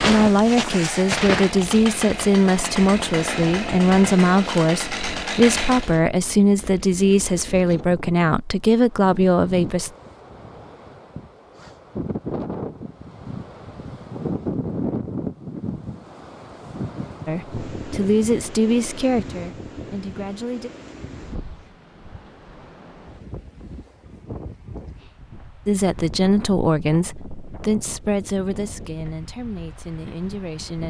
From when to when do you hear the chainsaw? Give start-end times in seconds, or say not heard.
0.0-6.0.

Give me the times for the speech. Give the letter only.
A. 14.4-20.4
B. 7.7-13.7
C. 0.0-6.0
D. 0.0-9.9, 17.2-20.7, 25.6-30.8
D.